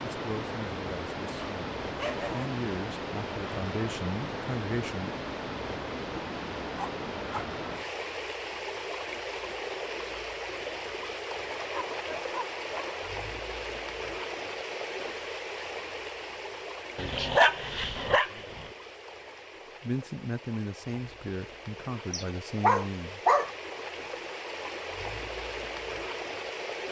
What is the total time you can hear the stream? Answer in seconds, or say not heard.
27 s.